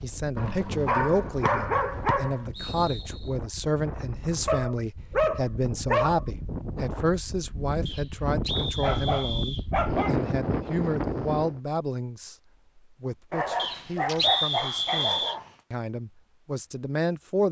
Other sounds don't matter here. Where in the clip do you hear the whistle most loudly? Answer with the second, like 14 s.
14 s.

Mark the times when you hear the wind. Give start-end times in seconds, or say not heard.
0.0-11.6.